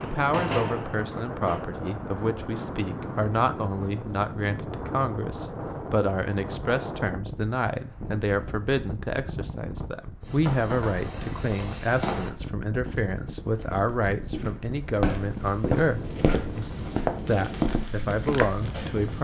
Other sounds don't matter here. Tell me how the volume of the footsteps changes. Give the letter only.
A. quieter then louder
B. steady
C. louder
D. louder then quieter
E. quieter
C.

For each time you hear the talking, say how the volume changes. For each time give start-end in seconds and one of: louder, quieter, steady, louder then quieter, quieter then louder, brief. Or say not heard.
0.0-19.1 steady.